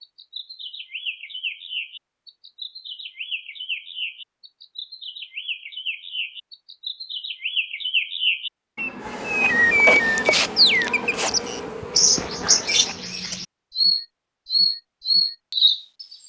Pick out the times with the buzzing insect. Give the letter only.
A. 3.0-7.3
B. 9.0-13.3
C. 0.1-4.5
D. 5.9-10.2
B.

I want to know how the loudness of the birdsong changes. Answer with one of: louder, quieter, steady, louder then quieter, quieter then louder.
louder.